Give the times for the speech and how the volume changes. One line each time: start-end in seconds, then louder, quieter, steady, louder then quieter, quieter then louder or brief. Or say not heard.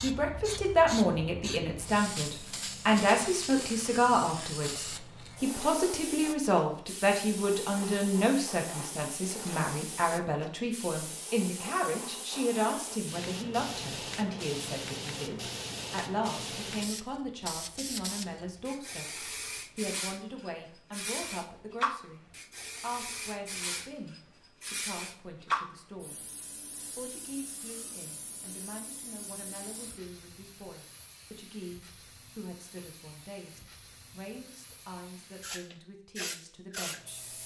0.0-26.2 quieter
26.9-37.2 steady.